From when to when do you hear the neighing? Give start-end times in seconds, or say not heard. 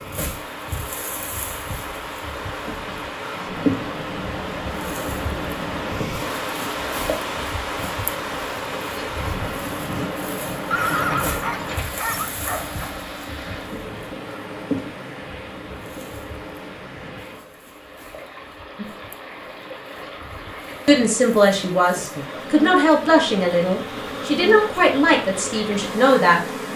10.7-12.3.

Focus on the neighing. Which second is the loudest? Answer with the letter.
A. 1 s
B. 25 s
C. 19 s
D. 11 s
D.